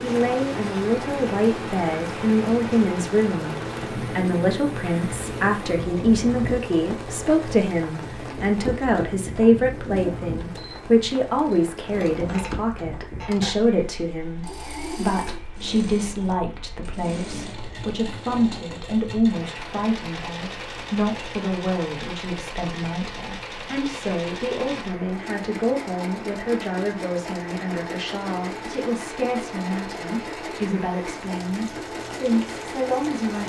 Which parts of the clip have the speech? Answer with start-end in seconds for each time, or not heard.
0.0-33.4.